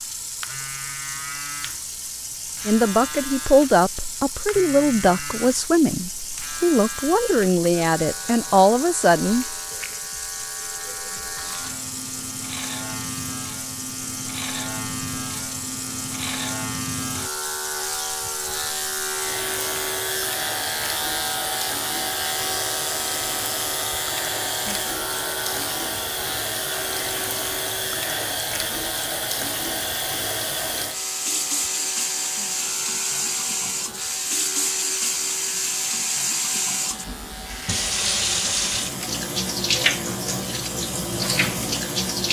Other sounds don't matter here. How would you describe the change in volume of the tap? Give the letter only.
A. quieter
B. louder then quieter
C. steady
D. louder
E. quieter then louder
D.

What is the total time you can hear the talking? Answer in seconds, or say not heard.
7 s.